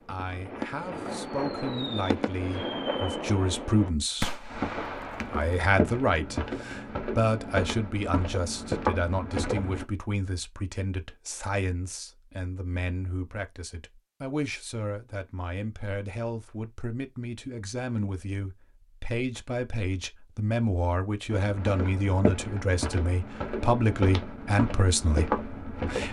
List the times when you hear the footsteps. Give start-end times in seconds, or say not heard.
4.5-9.8, 21.3-26.0.